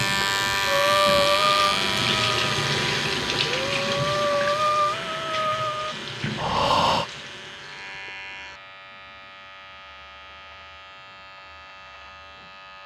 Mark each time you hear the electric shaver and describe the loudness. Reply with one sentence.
You can hear the electric shaver from 0.0 to 12.8 s, getting quieter.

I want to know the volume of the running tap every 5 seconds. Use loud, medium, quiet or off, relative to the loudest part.
loud, medium, off.